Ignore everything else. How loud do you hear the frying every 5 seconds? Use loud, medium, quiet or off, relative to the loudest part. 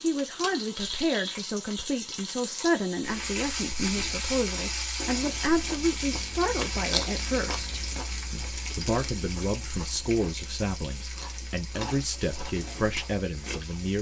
loud, loud, medium.